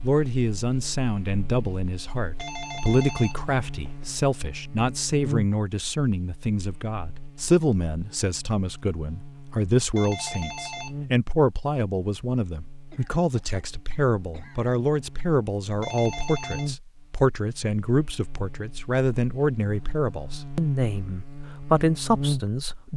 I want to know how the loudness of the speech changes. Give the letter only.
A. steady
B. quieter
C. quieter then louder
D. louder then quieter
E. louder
A.